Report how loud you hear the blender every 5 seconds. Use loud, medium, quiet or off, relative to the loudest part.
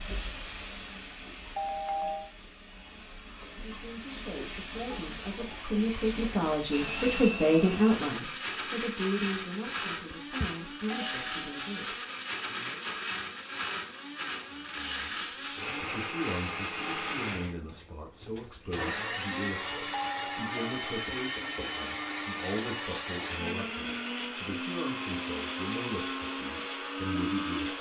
off, loud, loud, loud, loud, loud.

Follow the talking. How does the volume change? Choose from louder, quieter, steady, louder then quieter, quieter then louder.
quieter.